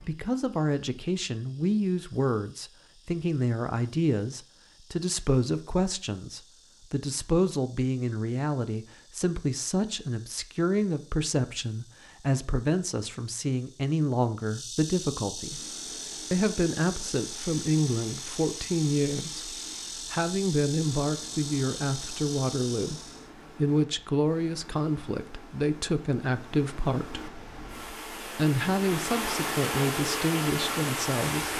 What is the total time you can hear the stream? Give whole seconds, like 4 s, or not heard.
16 s.